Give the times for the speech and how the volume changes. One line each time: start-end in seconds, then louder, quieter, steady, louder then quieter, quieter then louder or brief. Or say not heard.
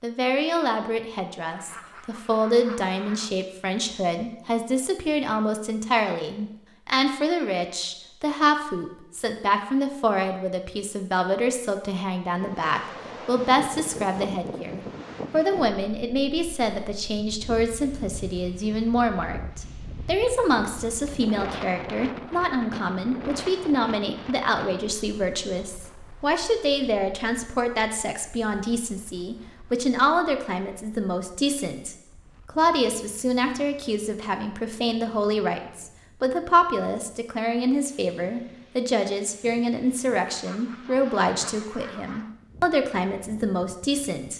0.0-44.3 steady.